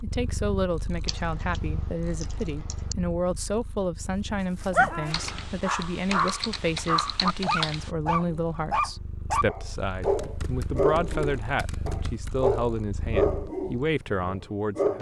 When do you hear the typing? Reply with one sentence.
The typing can be heard from 1.1 to 3.0 s, from 5.1 to 7.9 s and from 10.0 to 12.3 s.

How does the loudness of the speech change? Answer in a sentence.
The loudness of the speech stays about the same.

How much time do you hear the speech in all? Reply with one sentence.
You can hear the speech for 15 seconds altogether.